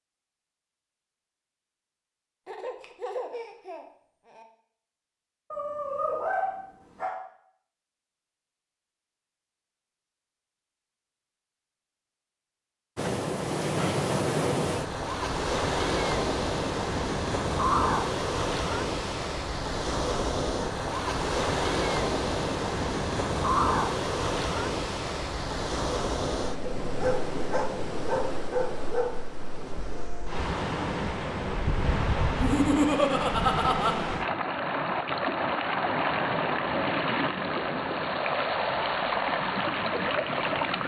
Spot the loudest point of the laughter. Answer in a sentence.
The loudest moment of the laughter is at 33 seconds.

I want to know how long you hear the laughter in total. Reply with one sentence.
You can hear the laughter for 4 seconds altogether.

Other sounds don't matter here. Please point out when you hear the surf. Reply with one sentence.
The surf can be heard from 12.9 to 40.8 s.